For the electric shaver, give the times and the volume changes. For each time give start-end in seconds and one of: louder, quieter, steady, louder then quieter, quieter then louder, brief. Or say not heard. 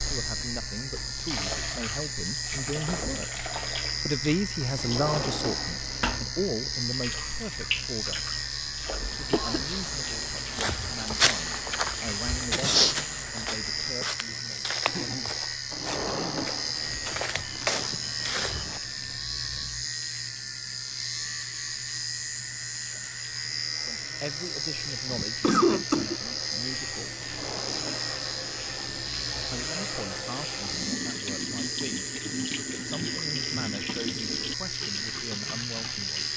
0.0-36.3 steady.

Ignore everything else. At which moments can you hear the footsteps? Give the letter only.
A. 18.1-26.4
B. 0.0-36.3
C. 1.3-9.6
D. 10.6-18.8
D.